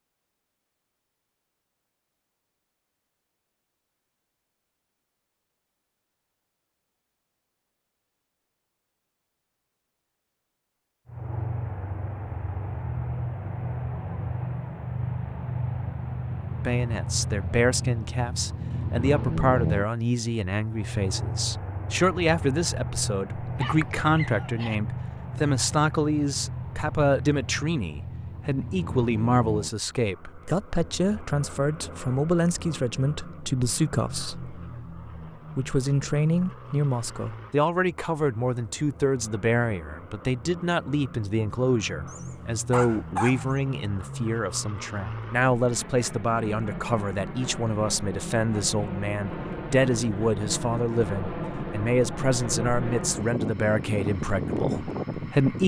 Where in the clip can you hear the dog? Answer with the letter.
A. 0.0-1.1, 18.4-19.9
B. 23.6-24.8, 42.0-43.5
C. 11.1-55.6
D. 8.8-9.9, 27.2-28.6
B.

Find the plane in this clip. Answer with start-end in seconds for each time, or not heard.
11.1-55.6.